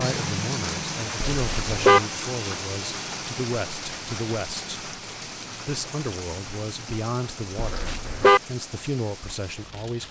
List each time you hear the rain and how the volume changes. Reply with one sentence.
The rain can be heard from 0.0 to 10.0 s, getting quieter.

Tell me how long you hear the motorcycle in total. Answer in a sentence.
The motorcycle can't be heard in this clip.